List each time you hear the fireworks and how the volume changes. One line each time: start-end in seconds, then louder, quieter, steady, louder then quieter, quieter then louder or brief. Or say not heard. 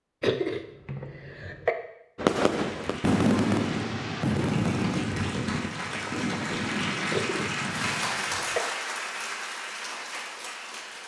2.1-8.1 quieter.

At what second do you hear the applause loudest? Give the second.
8 s.